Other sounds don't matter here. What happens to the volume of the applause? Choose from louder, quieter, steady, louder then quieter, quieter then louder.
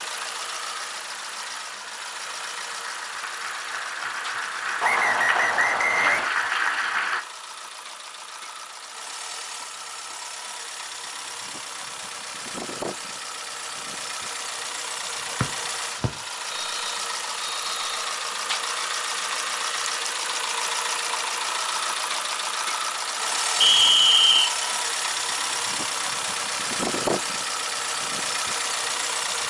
louder.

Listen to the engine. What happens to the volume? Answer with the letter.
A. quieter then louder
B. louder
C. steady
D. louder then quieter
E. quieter
B.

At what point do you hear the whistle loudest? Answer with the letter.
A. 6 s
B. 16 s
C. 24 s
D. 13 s
C.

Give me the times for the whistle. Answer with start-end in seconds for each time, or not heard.
4.8-6.3, 15.4-18.1, 23.6-24.6.